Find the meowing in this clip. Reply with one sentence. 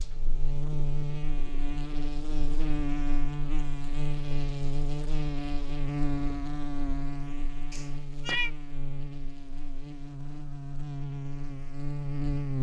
The meowing can be heard from 7.7 to 8.5 s.